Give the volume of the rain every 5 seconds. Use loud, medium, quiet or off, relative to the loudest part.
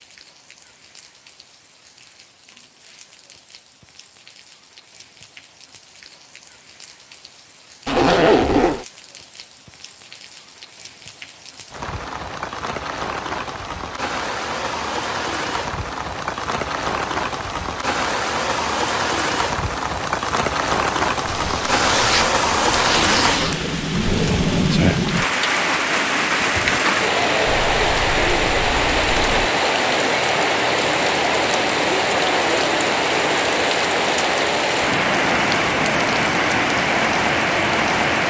quiet, quiet, medium, medium, loud, loud, loud, loud.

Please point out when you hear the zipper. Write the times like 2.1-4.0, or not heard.
7.8-8.8, 21.2-23.6, 27.4-29.5.